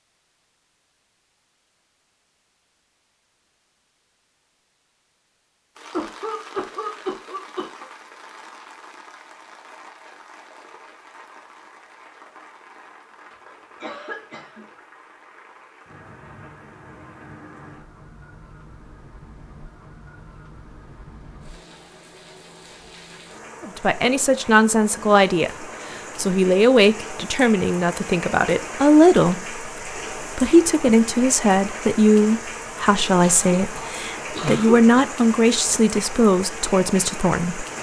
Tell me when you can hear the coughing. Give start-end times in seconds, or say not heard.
5.9-7.9, 13.3-14.8, 33.2-35.1.